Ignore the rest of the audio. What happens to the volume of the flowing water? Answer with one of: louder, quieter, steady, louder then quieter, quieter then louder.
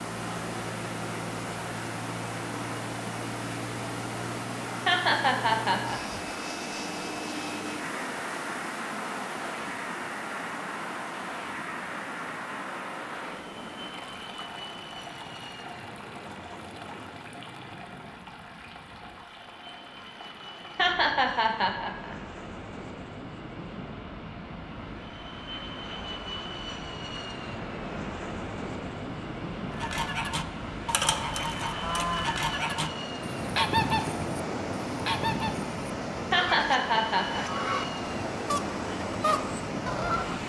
quieter then louder.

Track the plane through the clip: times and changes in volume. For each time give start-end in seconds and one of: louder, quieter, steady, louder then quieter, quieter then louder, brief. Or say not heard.
0.0-40.4 quieter then louder.